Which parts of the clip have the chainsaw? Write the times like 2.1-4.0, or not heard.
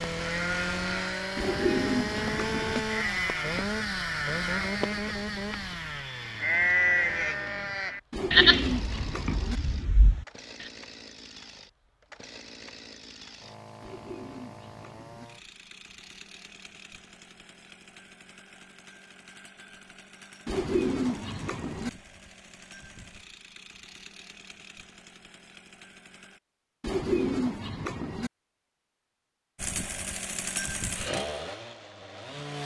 0.0-26.4, 29.6-32.6.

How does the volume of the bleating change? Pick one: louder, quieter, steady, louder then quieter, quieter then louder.
louder then quieter.